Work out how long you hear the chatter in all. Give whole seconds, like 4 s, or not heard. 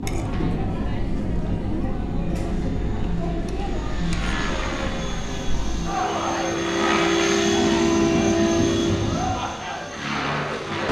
11 s.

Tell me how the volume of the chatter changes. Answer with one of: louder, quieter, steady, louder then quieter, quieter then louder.
steady.